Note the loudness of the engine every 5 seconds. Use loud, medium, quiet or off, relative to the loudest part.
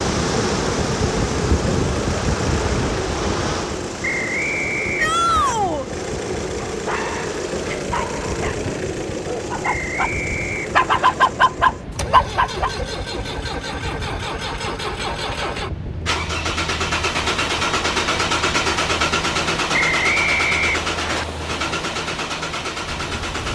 medium, medium, medium, loud, loud.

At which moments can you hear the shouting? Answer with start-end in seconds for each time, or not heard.
5.0-5.8.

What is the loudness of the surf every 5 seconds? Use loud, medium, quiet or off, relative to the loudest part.
loud, medium, medium, medium, medium.